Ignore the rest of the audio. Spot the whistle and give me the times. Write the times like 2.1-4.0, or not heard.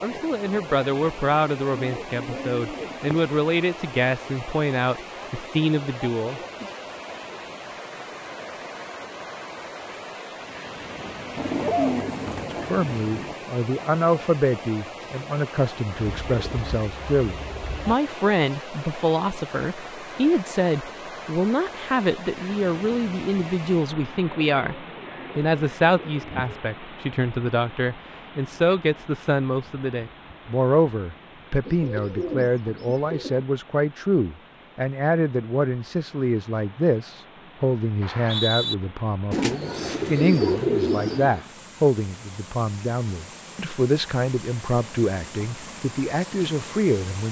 38.0-38.8.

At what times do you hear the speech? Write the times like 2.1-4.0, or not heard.
0.0-6.7, 12.5-47.2.